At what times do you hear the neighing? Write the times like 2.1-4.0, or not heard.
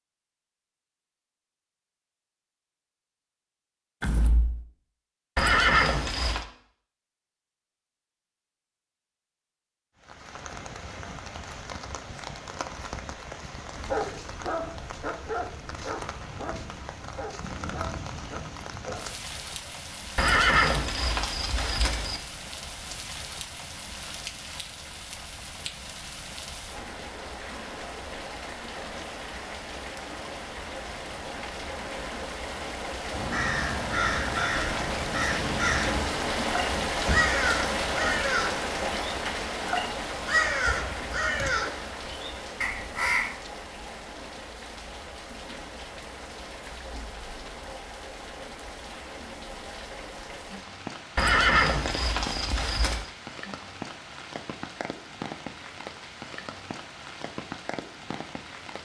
5.3-6.5, 20.1-22.2, 51.1-53.1.